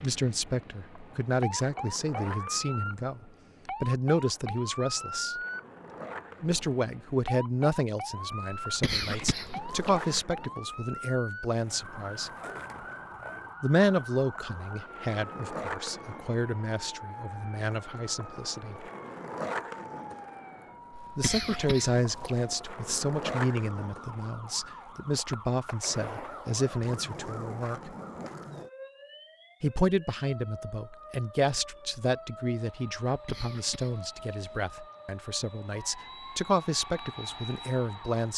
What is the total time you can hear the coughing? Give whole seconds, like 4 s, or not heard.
5 s.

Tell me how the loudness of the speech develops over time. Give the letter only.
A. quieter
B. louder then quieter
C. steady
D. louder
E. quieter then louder
C.